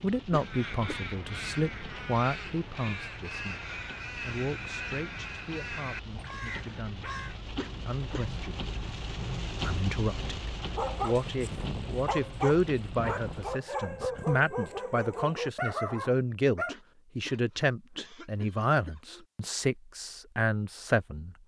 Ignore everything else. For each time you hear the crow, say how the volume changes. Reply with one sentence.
You can hear the crow from 0.3 to 7.3 s, at a steady volume.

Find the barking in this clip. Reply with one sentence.
You can hear the barking from 10.8 to 16.8 s.